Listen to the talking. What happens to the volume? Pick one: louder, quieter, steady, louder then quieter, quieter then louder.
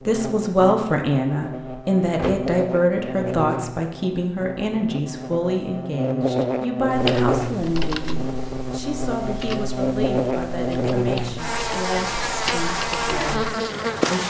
quieter.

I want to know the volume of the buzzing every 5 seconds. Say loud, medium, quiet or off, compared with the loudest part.
medium, loud, loud.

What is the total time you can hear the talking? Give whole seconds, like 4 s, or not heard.
14 s.